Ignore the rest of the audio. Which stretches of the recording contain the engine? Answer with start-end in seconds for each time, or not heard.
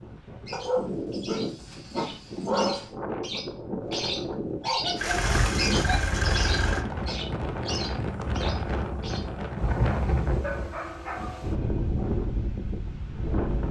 5.0-6.8.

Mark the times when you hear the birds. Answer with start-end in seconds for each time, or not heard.
0.0-9.2.